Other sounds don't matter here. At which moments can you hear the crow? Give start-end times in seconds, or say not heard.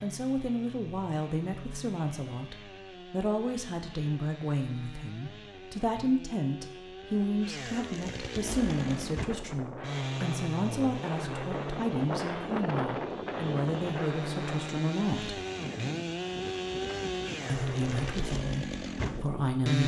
not heard.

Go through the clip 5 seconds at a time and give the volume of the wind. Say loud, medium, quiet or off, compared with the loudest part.
off, medium, loud, medium.